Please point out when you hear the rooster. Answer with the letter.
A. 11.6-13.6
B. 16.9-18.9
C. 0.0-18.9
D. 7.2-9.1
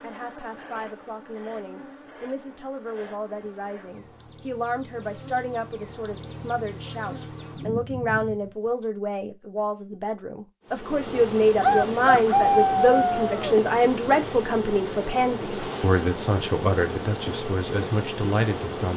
A.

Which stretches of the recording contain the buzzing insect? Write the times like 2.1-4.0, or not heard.
0.0-8.7, 10.7-18.9.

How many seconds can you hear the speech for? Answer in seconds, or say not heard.
19 s.